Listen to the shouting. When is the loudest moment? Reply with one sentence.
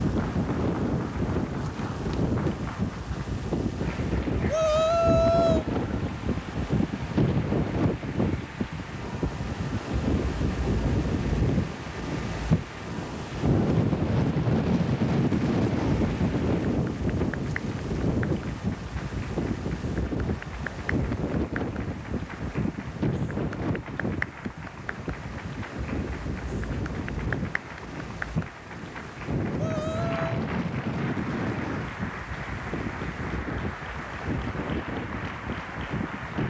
The volume of the shouting peaks at 5 seconds.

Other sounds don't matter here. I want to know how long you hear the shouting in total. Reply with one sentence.
You can hear the shouting for 2 seconds altogether.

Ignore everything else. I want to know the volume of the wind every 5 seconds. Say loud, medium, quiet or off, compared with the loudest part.
loud, loud, loud, loud, medium, medium, medium, medium.